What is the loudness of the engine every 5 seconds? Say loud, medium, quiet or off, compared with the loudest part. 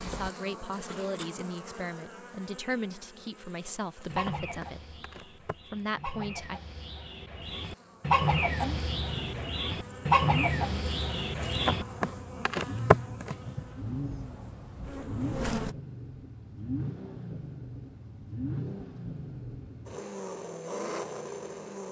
off, loud, loud, loud, loud.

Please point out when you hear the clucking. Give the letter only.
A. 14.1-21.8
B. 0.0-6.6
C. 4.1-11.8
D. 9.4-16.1
C.